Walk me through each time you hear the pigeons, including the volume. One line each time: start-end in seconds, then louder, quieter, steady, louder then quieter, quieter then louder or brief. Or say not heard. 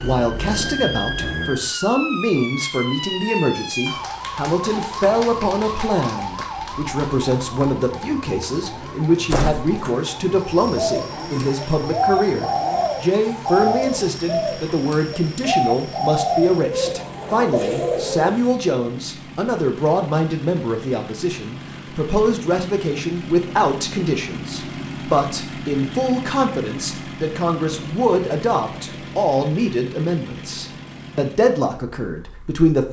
10.4-18.4 steady.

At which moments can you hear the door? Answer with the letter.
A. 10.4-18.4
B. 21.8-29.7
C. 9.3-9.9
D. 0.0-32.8
C.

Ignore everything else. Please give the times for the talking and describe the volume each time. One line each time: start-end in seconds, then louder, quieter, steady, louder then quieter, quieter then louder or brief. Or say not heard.
0.0-32.8 steady.